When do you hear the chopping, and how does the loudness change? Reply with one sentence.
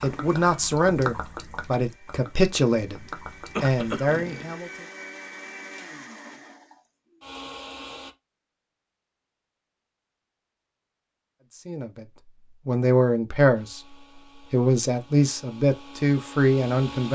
You can't hear the chopping here.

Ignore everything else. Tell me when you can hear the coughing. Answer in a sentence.
You can hear the coughing from 3.5 to 4.2 s.